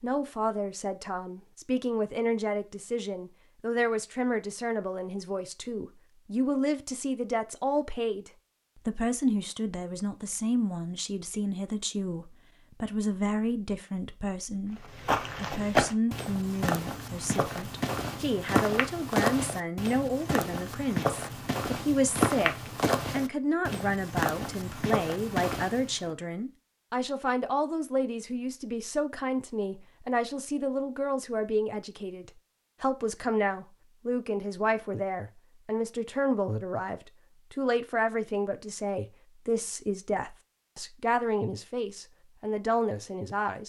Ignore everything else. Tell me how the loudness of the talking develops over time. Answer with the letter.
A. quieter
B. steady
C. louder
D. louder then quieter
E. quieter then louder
B.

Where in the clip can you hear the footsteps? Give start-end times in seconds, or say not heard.
14.8-26.1.